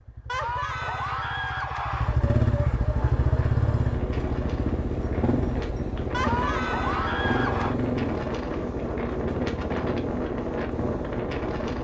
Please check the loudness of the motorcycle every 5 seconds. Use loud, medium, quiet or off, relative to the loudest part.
loud, loud, medium.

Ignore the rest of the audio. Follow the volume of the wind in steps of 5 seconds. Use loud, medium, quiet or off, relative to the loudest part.
medium, loud, loud.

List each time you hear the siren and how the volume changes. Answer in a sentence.
You can't hear the siren here.